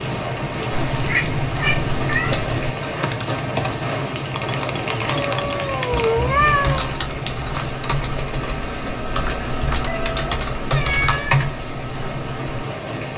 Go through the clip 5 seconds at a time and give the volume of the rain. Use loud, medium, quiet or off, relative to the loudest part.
loud, loud, medium.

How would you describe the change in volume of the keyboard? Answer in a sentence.
The loudness of the keyboard goes up.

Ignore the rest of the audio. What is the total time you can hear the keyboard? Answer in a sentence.
You can hear the keyboard for 10 seconds altogether.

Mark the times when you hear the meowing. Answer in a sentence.
The meowing can be heard from 0.7 to 2.8 s, from 5.1 to 7.0 s and from 9.8 to 11.3 s.